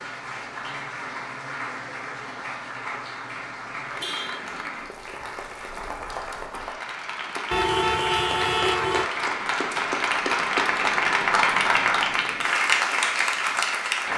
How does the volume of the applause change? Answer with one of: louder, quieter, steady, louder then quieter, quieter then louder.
louder.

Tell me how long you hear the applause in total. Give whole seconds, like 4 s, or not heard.
14 s.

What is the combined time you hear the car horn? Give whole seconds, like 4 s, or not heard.
2 s.